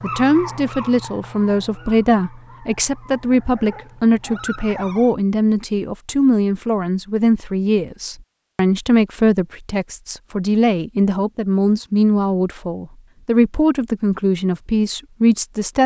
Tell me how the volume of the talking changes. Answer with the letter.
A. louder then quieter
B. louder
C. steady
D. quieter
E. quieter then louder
C.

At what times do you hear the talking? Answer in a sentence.
You can hear the talking from 0.0 to 15.8 s.